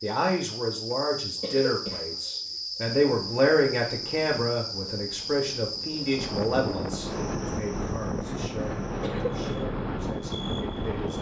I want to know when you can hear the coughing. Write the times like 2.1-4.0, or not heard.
1.4-2.1, 9.0-9.6.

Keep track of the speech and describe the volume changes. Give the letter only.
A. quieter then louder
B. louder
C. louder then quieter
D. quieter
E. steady
C.